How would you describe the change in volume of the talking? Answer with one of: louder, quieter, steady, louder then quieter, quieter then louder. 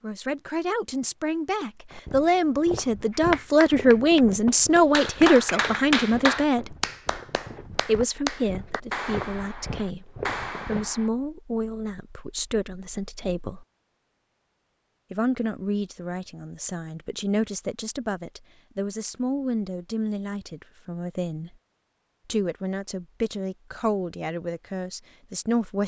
quieter.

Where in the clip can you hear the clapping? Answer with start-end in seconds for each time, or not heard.
3.1-11.1.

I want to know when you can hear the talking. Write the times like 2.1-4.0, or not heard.
0.0-6.8, 7.8-13.7, 15.1-21.5, 22.2-25.8.